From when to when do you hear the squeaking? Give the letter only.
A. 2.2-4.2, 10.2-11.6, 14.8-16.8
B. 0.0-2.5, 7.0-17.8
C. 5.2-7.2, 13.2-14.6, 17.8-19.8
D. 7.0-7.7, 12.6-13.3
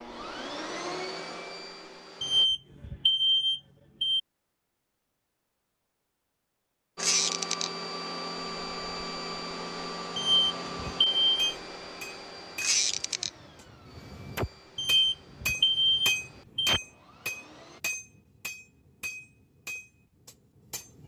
D.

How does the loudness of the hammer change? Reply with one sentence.
The loudness of the hammer goes up, then down.